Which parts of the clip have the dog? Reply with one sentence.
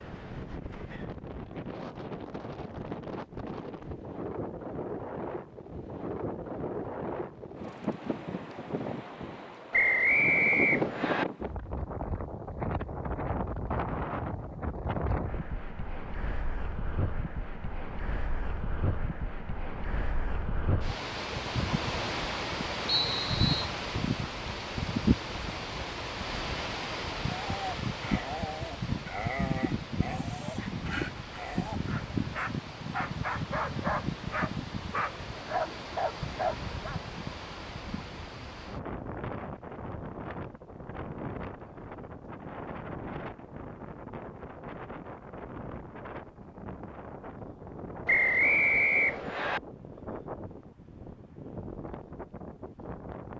The dog can be heard from 27.4 to 37.0 s.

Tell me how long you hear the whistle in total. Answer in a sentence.
You can hear the whistle for 4 seconds altogether.